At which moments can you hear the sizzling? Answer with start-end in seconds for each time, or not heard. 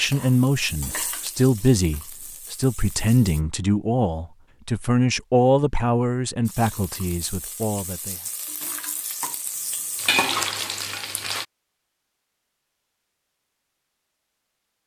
0.0-3.5, 6.5-11.4.